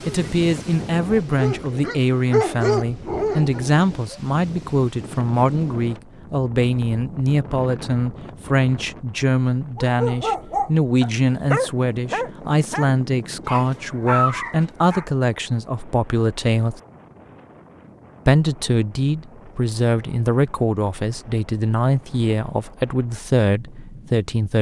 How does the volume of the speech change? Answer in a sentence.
The volume of the speech stays about the same.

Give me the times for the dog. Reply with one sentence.
The dog can be heard from 0.0 to 4.2 s and from 9.8 to 15.1 s.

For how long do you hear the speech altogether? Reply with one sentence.
You can hear the speech for 23 seconds altogether.